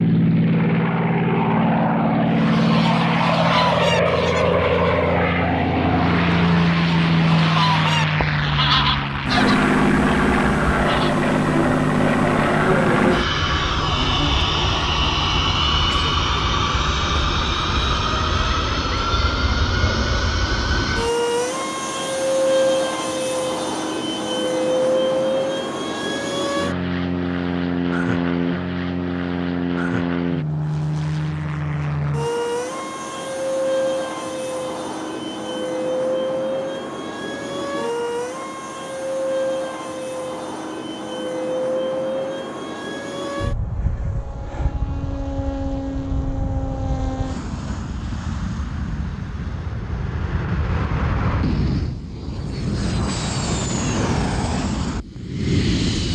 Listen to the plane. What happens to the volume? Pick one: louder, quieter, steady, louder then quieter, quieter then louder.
quieter.